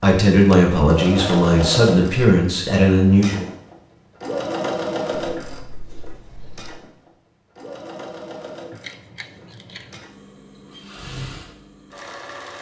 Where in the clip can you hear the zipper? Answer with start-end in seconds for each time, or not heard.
not heard.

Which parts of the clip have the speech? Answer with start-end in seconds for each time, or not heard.
0.0-3.5.